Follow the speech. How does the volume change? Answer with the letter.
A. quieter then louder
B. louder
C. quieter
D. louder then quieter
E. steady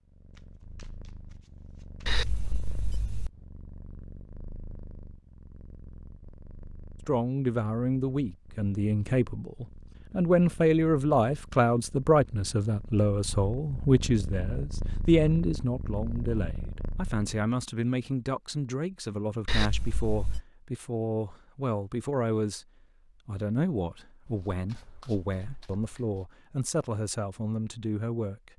C.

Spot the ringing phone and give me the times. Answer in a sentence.
You can hear the ringing phone from 2.0 to 3.3 s and from 19.4 to 20.4 s.